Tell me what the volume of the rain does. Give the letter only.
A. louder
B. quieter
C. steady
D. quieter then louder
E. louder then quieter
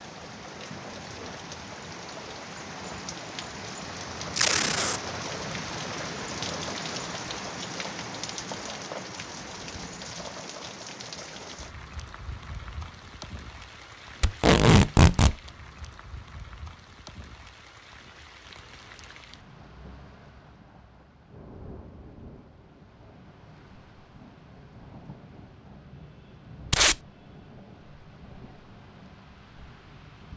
B.